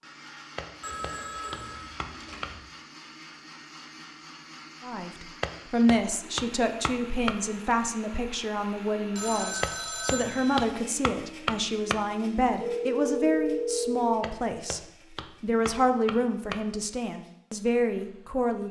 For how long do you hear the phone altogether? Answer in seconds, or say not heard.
5 s.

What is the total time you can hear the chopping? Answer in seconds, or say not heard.
9 s.